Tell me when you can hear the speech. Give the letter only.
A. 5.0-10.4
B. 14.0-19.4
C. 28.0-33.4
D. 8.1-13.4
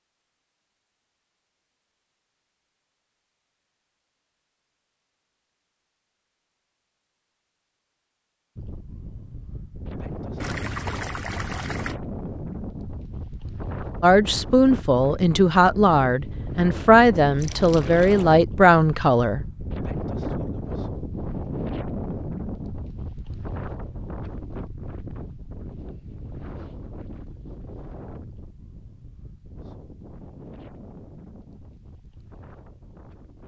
B.